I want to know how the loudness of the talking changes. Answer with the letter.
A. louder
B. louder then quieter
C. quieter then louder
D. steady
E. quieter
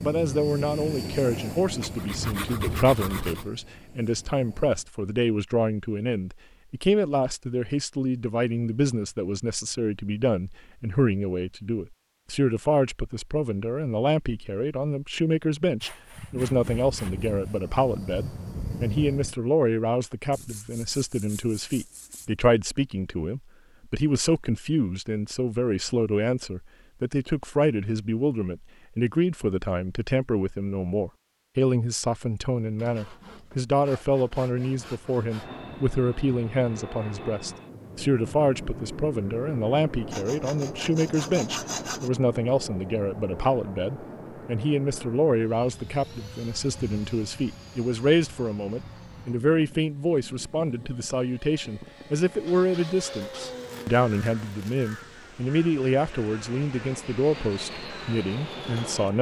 D.